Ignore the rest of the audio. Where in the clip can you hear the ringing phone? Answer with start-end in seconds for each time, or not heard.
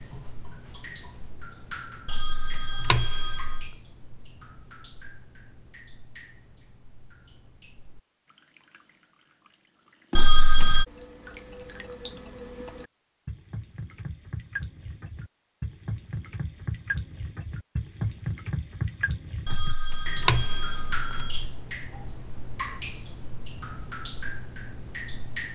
2.0-3.7, 10.2-10.8, 19.4-21.4.